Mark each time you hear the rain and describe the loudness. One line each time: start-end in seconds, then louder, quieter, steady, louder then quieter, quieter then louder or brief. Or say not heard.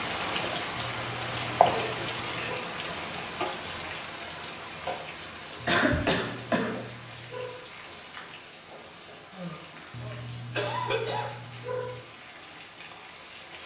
0.0-13.6 quieter.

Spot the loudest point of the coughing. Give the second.
6 s.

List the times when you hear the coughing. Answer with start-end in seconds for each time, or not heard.
1.9-2.5, 5.7-6.8, 9.3-11.3.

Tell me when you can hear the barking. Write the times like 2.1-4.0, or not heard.
0.8-2.6, 5.6-7.5, 9.9-12.1.